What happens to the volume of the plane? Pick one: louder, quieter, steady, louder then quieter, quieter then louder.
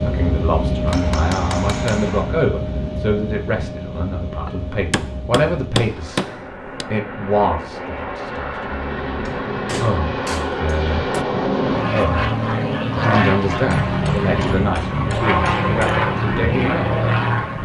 quieter then louder.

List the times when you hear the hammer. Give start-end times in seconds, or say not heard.
0.8-2.4, 4.5-6.8, 9.2-11.2, 13.7-16.1.